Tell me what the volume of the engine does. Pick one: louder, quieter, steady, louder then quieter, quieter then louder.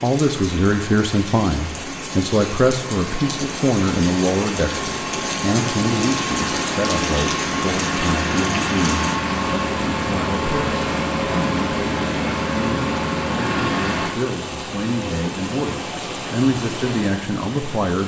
louder.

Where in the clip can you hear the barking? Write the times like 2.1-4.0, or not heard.
not heard.